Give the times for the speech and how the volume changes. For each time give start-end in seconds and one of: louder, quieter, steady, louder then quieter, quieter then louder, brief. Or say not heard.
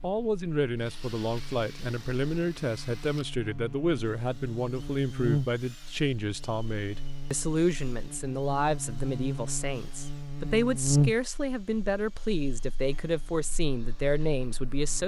0.0-15.0 steady.